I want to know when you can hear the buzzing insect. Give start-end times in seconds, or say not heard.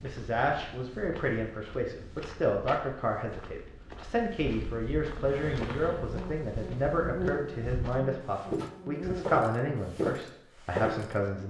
5.2-9.4.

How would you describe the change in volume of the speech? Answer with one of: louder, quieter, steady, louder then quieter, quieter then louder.
steady.